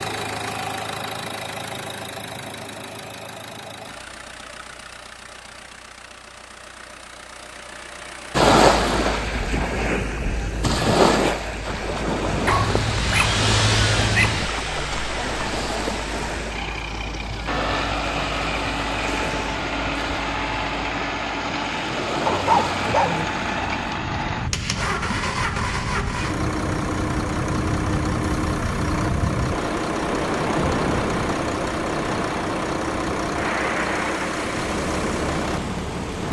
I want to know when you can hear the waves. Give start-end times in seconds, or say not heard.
8.3-36.2.